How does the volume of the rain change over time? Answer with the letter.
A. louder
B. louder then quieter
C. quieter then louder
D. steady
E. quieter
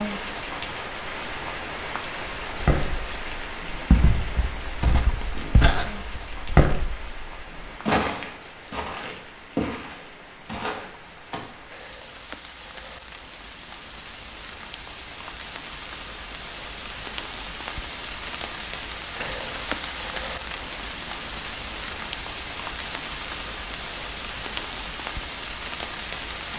C.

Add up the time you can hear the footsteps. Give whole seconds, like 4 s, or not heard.
9 s.